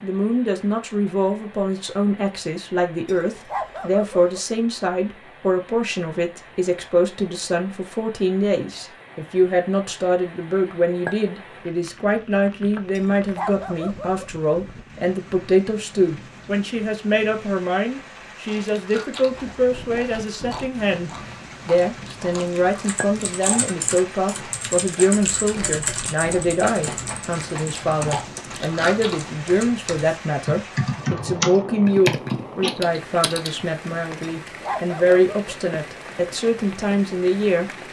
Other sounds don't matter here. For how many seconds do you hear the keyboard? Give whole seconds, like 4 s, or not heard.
11 s.